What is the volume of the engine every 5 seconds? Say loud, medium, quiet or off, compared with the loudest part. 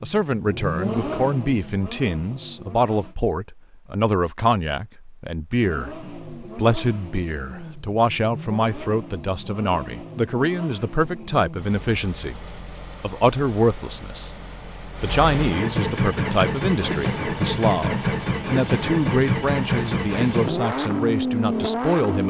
medium, quiet, quiet, loud, loud.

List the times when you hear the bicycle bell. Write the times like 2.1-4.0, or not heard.
not heard.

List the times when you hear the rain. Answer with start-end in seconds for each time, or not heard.
not heard.